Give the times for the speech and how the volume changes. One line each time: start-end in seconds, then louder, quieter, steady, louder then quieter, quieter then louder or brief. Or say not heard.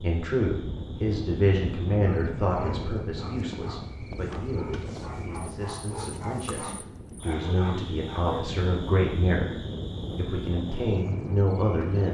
0.0-9.5 quieter then louder
10.2-12.1 brief.